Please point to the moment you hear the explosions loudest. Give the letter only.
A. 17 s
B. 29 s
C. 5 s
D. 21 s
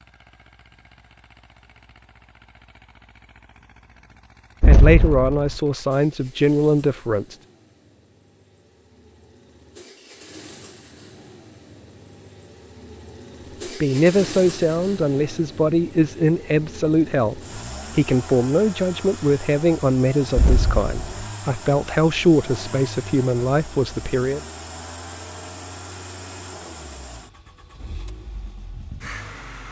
C.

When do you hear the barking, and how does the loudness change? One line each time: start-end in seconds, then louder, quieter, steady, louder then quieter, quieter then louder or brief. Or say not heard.
not heard.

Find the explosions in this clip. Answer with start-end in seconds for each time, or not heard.
4.6-5.5, 20.4-21.2.